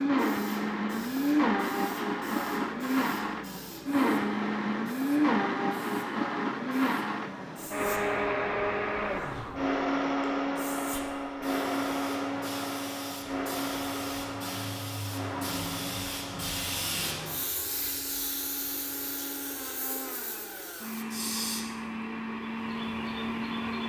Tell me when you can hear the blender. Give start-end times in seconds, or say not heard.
0.0-23.8.